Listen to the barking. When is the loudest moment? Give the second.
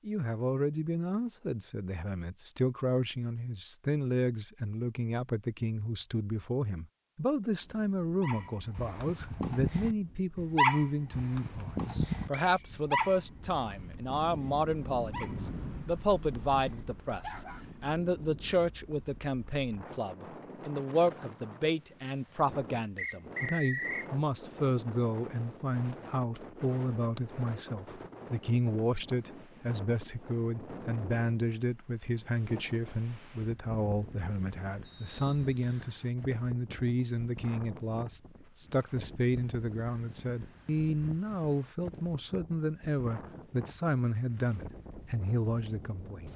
11 s.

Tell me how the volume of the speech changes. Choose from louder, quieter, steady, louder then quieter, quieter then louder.
steady.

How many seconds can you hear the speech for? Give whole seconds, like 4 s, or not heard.
46 s.